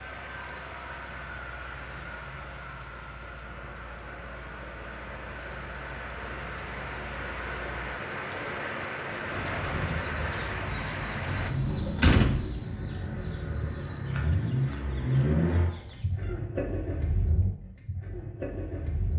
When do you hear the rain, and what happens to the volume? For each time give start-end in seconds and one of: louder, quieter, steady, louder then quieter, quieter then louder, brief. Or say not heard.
0.0-11.5 louder.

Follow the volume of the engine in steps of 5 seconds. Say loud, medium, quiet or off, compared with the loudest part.
quiet, medium, loud, loud.